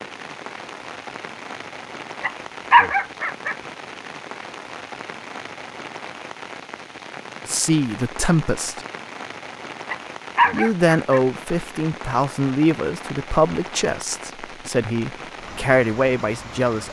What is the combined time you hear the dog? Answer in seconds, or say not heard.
3 s.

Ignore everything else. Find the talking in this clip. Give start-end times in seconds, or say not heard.
7.5-8.8, 10.5-16.8.